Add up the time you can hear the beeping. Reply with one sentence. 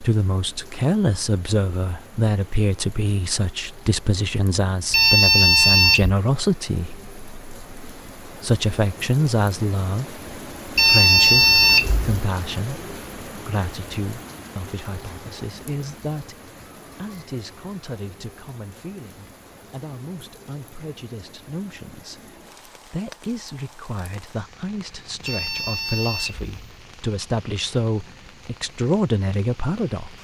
The beeping can be heard for 4 seconds in total.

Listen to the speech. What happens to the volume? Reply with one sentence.
The loudness of the speech goes down, then up.